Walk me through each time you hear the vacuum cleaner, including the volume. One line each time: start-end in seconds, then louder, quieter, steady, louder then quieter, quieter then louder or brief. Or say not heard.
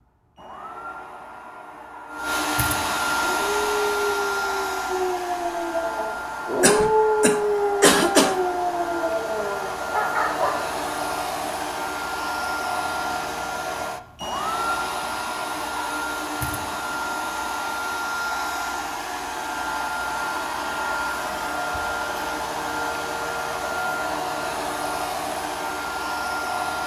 0.0-26.8 steady.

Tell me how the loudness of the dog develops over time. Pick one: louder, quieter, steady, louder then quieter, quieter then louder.
louder then quieter.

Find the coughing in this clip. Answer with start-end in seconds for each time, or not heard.
6.6-8.4.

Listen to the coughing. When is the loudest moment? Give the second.
8 s.